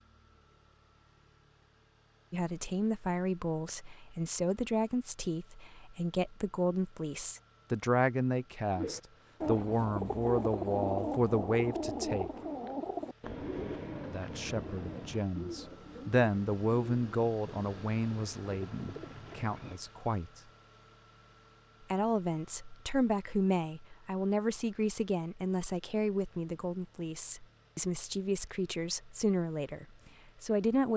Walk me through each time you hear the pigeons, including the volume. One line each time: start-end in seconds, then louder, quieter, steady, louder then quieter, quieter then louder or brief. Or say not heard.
8.8-19.8 quieter.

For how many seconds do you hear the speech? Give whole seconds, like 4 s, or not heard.
25 s.